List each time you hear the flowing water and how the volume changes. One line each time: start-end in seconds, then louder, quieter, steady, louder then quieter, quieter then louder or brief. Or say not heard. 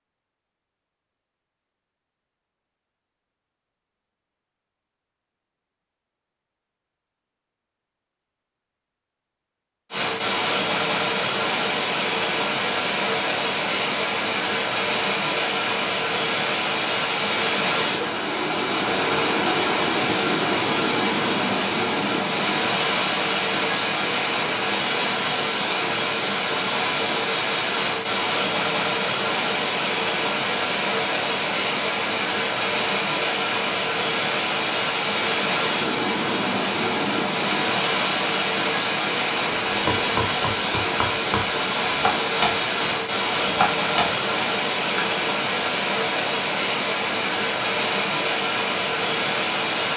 9.9-49.9 steady.